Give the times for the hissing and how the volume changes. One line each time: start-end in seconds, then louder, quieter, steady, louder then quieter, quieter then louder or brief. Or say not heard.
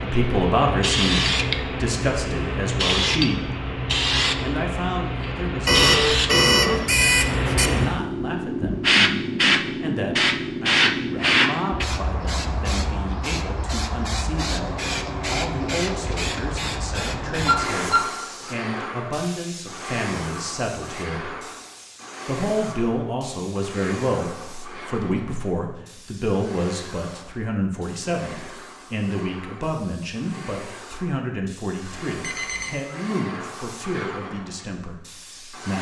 0.0-35.7 quieter.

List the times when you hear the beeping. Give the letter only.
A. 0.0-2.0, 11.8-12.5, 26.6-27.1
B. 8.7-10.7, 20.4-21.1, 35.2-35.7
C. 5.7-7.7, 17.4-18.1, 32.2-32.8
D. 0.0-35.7
C.